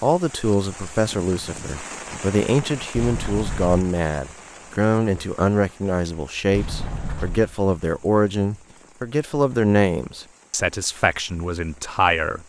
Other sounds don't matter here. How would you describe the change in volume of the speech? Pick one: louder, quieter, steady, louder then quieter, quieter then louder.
steady.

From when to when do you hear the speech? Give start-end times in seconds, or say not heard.
0.0-12.4.